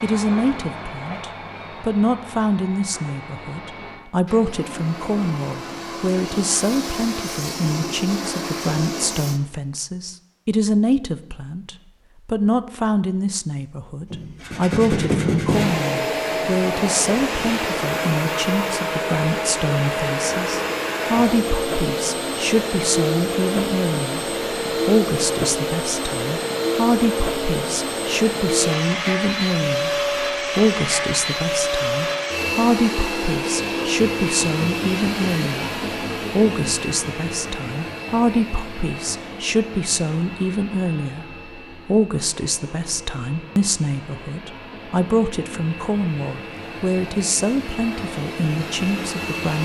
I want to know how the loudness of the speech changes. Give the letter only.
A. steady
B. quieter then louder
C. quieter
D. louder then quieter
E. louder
A.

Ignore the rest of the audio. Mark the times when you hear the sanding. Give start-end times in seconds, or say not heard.
14.1-15.7.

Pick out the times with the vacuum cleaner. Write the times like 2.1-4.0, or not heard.
0.0-9.4, 15.4-49.6.